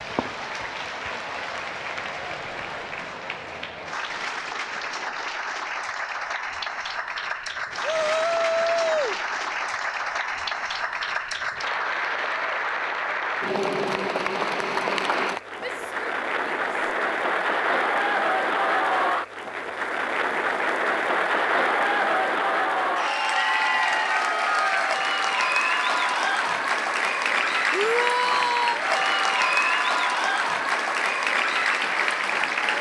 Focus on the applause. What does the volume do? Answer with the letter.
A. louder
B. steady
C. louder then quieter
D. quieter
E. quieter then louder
A.